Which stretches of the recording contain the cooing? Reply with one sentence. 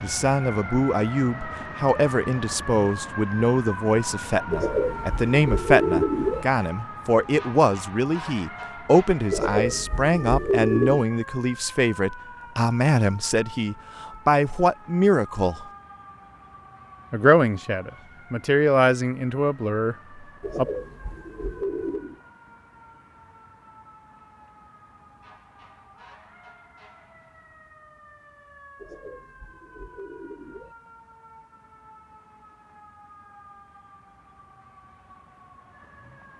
The cooing can be heard from 4.5 to 6.5 s, from 9.3 to 11.0 s, from 20.4 to 22.2 s and from 28.8 to 30.8 s.